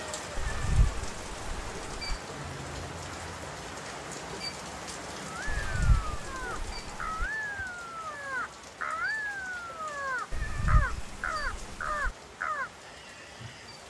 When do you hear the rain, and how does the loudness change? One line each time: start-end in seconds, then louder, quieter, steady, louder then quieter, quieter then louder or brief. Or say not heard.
0.0-13.8 quieter.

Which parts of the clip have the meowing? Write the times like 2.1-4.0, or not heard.
0.3-2.2, 5.5-7.3, 10.3-12.2.